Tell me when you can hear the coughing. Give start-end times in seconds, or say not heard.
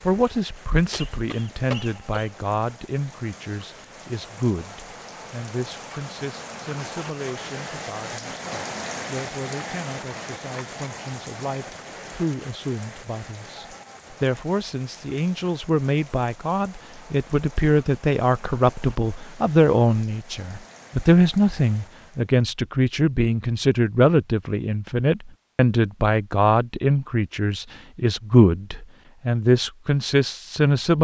0.9-2.2.